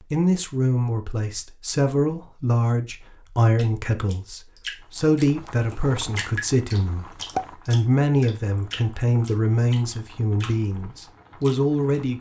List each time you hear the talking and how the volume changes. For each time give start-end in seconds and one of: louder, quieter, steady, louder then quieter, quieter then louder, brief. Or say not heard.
0.1-12.1 steady.